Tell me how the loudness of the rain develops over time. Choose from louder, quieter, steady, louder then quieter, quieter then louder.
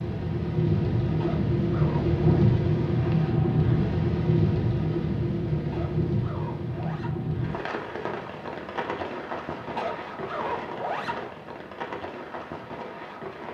quieter.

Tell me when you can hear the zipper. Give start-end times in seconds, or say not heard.
1.2-2.5, 5.7-7.2, 9.8-11.2.